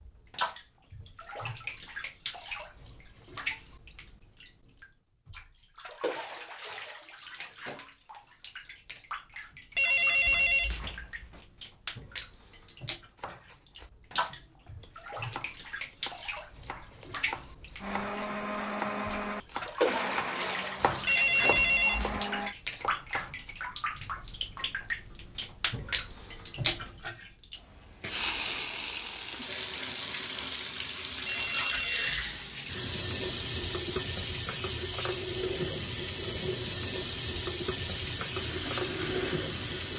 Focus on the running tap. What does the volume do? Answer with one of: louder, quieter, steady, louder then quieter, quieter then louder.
louder.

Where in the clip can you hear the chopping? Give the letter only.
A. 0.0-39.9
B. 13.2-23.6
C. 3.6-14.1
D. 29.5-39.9
B.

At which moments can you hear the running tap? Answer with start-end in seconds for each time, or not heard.
0.0-39.9.